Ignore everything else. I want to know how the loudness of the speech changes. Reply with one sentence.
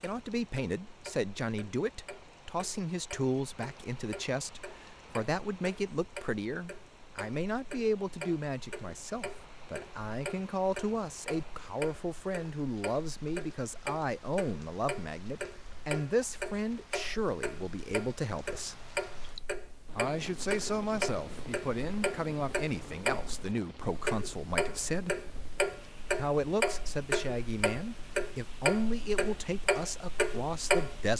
The volume of the speech stays about the same.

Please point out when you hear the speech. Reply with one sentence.
You can hear the speech from 0.0 to 18.8 s, from 19.9 to 25.2 s and from 26.1 to 31.1 s.